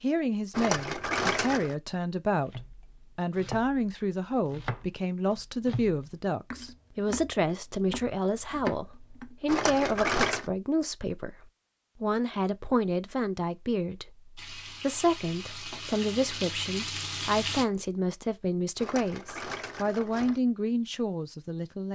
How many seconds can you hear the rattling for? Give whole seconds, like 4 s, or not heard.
4 s.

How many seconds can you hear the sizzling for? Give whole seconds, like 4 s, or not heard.
3 s.